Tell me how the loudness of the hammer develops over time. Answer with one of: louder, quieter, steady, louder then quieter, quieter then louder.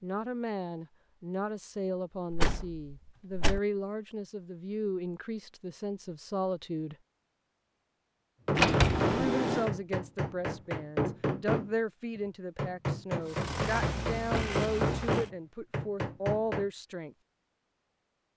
steady.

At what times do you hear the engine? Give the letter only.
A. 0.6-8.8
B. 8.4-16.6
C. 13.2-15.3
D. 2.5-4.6
C.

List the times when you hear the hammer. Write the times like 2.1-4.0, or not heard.
8.4-16.6.